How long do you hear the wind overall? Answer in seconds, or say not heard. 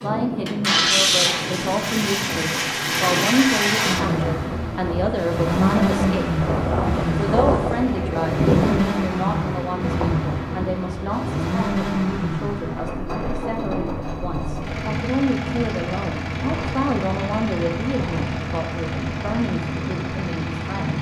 21 s.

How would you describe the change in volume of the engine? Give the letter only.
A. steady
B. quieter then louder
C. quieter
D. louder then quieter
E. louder
C.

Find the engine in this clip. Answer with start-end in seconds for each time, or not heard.
0.5-20.9.